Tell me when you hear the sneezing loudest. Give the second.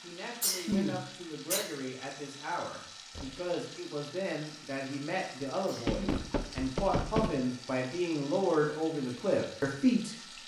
1 s.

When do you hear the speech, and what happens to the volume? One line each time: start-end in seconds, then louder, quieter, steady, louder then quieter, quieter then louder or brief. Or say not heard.
0.0-10.2 louder.